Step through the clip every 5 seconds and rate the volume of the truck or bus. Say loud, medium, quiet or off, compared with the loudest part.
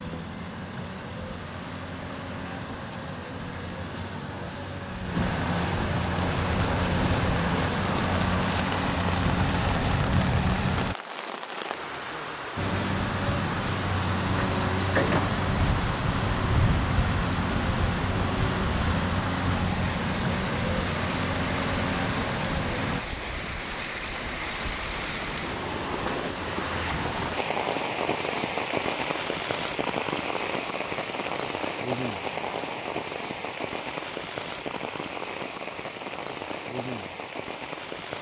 medium, loud, loud, loud, loud, off, off, off.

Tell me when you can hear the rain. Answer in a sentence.
You can hear the rain from 6.1 to 38.1 s.